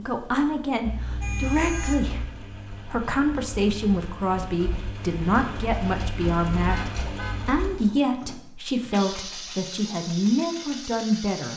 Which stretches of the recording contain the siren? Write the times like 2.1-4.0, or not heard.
not heard.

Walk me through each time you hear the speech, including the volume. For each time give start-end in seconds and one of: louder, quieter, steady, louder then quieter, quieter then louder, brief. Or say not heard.
0.0-11.5 steady.